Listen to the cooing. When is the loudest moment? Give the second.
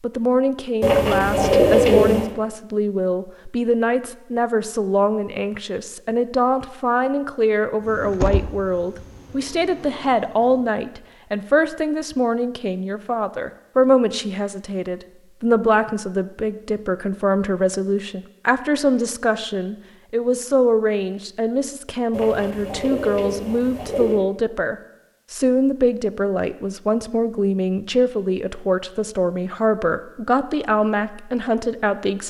2 s.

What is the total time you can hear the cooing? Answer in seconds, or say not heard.
4 s.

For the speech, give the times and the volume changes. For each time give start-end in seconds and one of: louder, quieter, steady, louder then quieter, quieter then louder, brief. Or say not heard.
0.0-32.2 steady.